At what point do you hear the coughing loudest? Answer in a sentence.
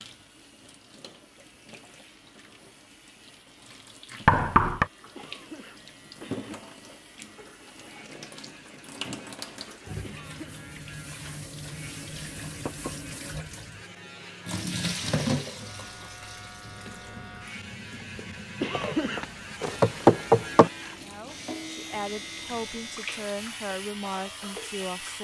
The loudest moment of the coughing is at 19 seconds.